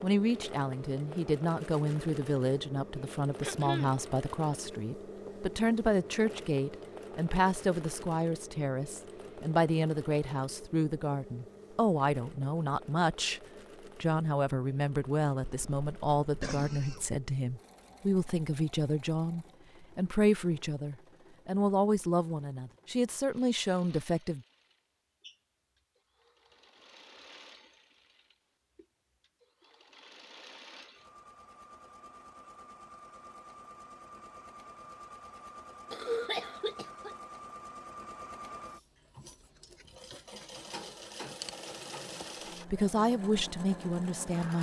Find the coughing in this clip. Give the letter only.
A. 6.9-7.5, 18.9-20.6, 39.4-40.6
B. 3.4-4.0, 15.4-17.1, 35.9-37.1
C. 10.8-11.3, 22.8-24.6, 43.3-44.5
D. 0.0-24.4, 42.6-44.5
B.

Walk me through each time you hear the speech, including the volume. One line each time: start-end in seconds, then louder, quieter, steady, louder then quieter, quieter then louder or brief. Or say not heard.
0.0-24.4 steady
42.6-44.5 brief.